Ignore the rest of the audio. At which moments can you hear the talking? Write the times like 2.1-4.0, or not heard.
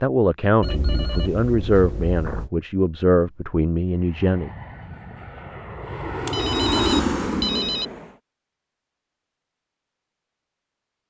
0.0-4.5.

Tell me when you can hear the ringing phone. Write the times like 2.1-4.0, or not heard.
0.6-2.5, 6.2-7.8.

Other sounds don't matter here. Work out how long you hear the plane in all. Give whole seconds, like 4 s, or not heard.
4 s.